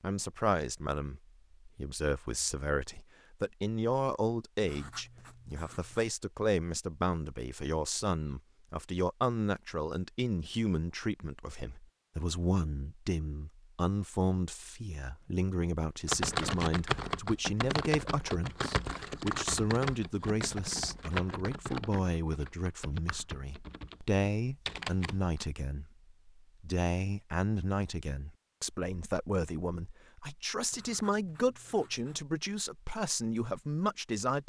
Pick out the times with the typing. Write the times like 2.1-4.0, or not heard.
16.1-25.4.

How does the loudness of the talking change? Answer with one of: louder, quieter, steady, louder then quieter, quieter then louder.
steady.